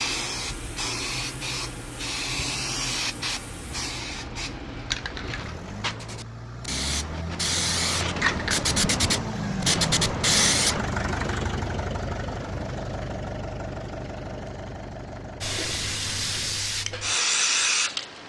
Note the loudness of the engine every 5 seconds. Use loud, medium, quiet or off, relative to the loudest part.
medium, loud, loud, medium.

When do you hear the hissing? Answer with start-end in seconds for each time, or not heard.
0.0-10.8, 15.4-18.2.